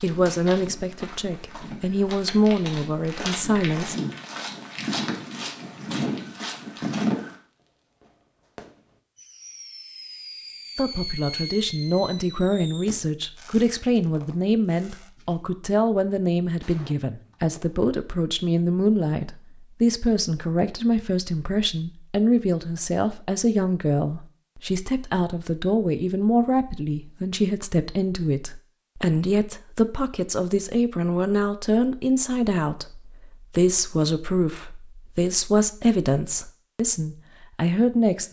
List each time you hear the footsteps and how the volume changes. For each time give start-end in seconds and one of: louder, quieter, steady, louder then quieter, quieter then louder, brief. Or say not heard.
0.0-7.3 louder.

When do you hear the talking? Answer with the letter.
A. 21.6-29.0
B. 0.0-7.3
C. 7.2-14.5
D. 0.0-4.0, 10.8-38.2
D.